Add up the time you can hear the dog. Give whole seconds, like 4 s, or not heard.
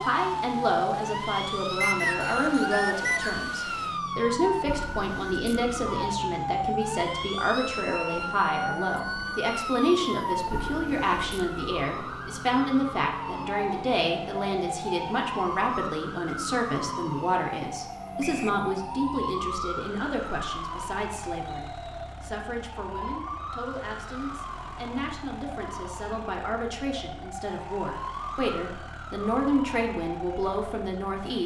not heard.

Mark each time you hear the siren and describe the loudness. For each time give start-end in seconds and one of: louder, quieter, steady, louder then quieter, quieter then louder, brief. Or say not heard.
0.0-31.4 quieter.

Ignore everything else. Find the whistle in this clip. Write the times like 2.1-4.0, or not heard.
1.8-3.4, 18.2-18.6, 21.4-22.1.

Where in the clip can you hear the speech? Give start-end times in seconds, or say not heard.
0.0-31.4.